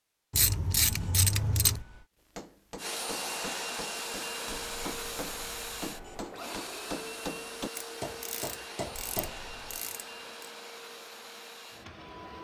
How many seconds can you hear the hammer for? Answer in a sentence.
The hammer can be heard for 7 seconds in total.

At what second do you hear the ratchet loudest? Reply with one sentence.
The loudest moment of the ratchet is at 1 second.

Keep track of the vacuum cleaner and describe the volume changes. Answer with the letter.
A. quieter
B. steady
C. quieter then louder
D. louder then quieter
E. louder
A.